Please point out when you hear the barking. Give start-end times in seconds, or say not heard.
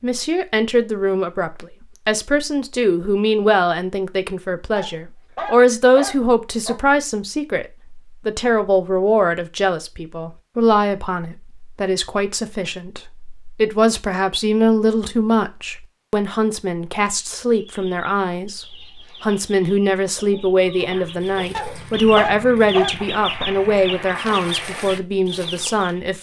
4.8-6.8, 21.5-22.9.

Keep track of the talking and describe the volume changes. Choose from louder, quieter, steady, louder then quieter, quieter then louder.
steady.